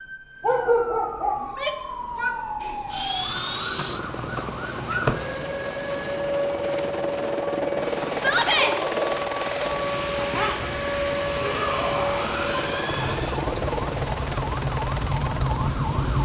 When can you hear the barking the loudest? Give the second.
1 s.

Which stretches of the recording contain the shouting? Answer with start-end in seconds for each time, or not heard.
1.4-2.8, 8.2-8.8, 11.4-13.4.